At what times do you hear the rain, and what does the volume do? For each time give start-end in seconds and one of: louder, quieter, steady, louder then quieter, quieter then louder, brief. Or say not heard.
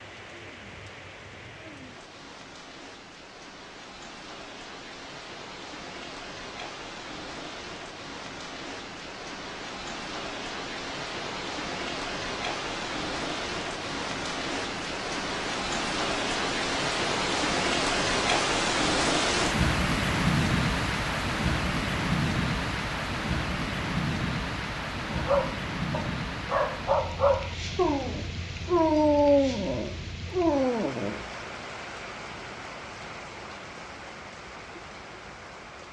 0.0-35.8 louder then quieter.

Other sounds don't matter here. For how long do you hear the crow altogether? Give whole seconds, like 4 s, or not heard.
not heard.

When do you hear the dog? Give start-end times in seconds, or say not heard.
25.1-31.2.